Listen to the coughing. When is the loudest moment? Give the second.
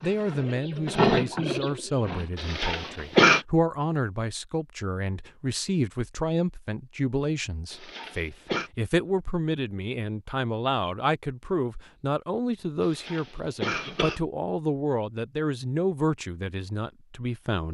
3 s.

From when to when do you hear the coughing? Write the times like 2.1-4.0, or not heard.
2.4-3.5, 7.7-8.7, 13.0-14.2.